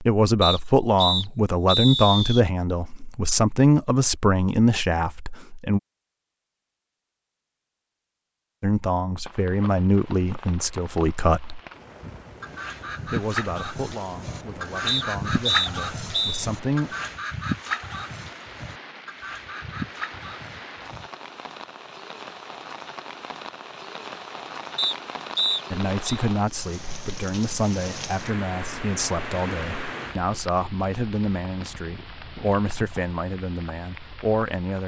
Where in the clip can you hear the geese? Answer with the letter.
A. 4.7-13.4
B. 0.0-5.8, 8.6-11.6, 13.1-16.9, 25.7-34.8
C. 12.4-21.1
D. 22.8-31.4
C.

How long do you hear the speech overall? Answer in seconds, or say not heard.
22 s.